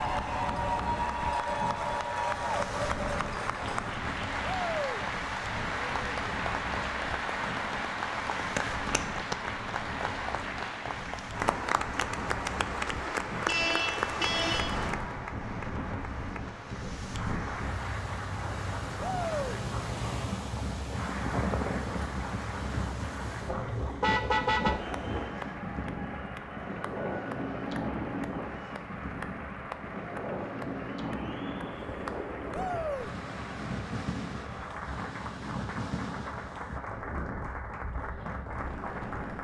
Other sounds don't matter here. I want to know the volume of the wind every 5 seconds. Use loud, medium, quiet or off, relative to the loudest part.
medium, medium, medium, loud, loud, loud, loud, medium.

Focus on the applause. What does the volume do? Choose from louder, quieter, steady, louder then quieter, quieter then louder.
quieter.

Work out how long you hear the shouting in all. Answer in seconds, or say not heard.
2 s.